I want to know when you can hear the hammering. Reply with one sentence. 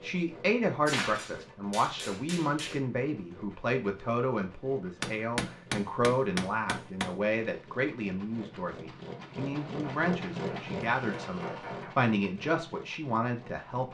You can hear the hammering from 0.8 to 2.8 s, from 5.0 to 7.2 s and from 9.7 to 11.9 s.